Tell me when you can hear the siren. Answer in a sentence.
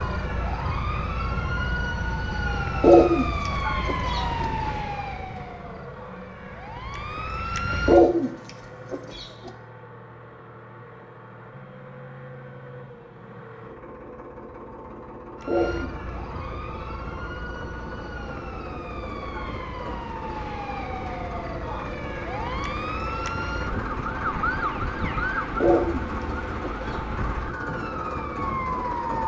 You can hear the siren from 0.0 to 8.2 s and from 15.3 to 29.2 s.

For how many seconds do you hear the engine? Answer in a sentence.
The engine can be heard for 29 seconds in total.